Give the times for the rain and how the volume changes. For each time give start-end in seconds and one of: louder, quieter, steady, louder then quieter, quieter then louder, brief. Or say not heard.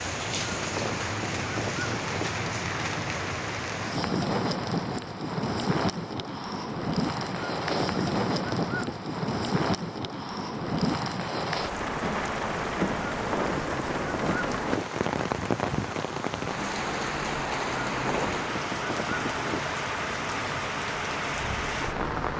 0.0-22.3 steady.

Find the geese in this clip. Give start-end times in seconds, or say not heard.
0.2-2.3, 7.2-8.9, 12.9-14.8, 17.6-19.6.